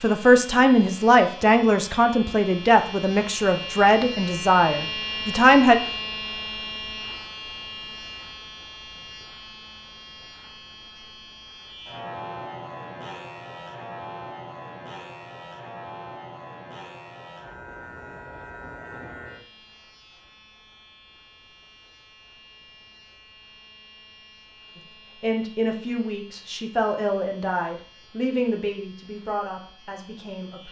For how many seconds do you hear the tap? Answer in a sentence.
You can't hear the tap here.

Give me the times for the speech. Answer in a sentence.
The speech can be heard from 0.0 to 5.8 s and from 24.8 to 30.6 s.